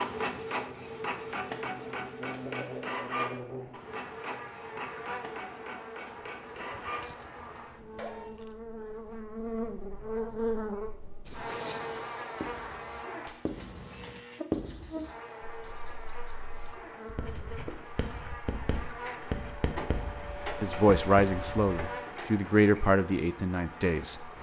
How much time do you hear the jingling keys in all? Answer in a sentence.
You can hear the jingling keys for 3 seconds altogether.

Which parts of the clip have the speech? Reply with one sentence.
The speech can be heard from 20.6 to 24.3 s.